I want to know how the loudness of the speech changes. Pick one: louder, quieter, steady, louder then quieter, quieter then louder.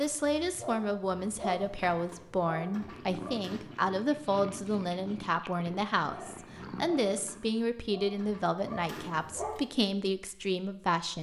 steady.